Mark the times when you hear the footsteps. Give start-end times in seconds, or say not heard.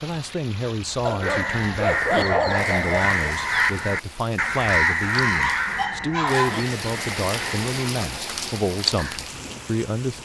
not heard.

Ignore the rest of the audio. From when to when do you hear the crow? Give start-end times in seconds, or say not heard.
1.2-7.7.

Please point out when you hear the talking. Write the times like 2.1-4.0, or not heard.
0.0-10.2.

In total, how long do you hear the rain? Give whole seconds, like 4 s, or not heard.
10 s.